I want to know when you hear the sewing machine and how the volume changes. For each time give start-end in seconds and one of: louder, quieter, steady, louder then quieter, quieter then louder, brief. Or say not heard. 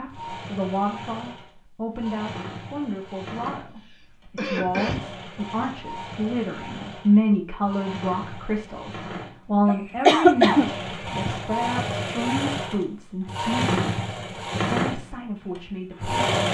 0.1-16.4 louder.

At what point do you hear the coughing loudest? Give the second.
10 s.